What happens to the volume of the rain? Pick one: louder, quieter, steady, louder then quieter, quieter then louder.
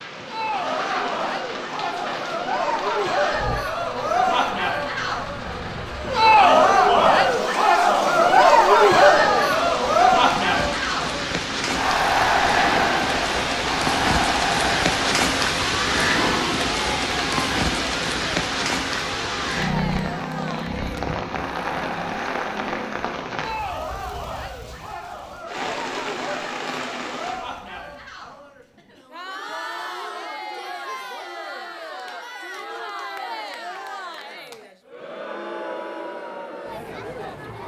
louder then quieter.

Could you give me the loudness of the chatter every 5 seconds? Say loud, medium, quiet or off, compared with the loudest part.
medium, loud, medium, quiet, quiet, quiet, quiet, quiet.